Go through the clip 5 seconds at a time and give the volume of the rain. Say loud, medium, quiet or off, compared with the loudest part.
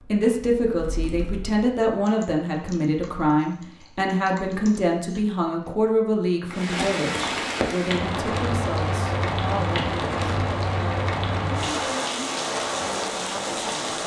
off, loud, loud.